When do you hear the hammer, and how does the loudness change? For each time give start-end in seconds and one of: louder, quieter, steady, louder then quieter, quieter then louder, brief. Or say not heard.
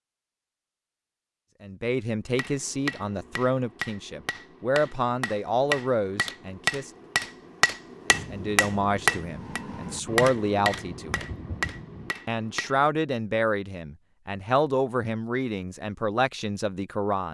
2.4-12.8 louder then quieter.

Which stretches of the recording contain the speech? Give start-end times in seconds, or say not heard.
1.6-6.9, 8.1-11.3, 12.2-17.3.